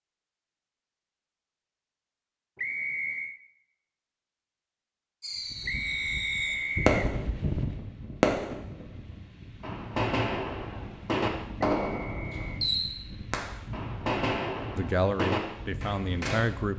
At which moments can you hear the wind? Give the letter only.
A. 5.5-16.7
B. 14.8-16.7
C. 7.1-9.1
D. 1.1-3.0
A.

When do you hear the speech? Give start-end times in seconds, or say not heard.
14.8-16.7.